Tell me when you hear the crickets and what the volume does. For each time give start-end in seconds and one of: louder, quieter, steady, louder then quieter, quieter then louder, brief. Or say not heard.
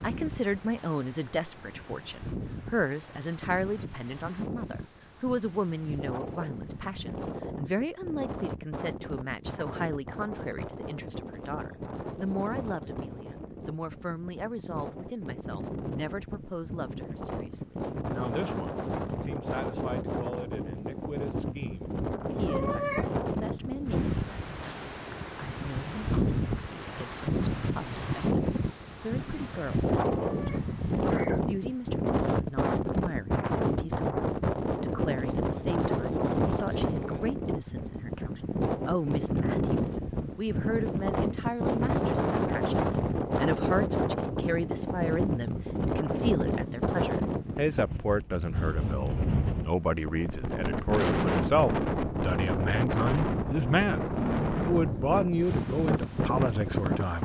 not heard.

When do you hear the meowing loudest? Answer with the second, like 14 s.
23 s.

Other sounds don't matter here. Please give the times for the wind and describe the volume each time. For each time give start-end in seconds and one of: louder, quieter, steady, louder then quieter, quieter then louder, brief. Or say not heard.
0.0-57.2 louder.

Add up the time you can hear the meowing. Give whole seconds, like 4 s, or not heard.
2 s.